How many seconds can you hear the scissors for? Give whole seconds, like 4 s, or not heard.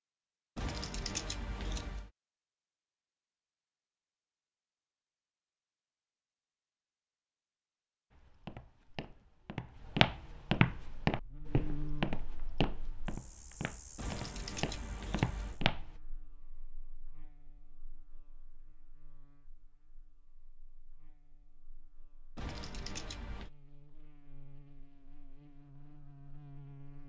4 s.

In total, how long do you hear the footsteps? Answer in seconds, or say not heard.
8 s.